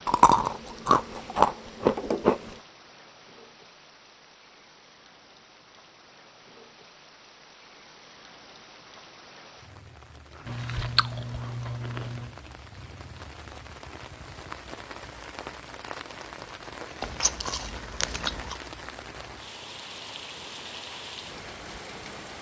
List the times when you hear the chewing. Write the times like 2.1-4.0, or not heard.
0.1-2.5, 10.4-12.3, 17.0-18.6.